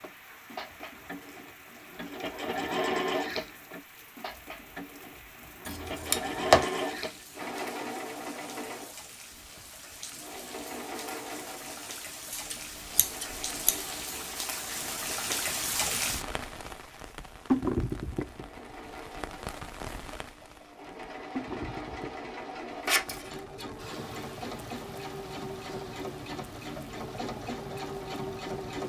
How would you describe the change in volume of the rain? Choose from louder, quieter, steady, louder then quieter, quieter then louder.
louder then quieter.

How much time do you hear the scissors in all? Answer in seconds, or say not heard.
3 s.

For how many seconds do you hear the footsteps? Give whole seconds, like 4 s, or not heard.
not heard.